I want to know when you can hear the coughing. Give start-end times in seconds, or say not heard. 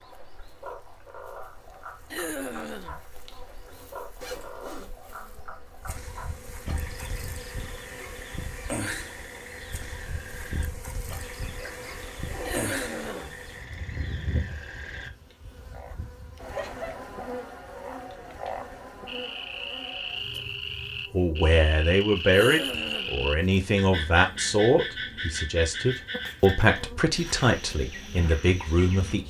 2.1-3.0, 12.4-13.3, 22.3-23.2.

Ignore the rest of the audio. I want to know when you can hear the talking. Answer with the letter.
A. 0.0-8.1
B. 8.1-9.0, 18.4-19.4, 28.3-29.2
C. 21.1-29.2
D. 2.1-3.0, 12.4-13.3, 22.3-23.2
C.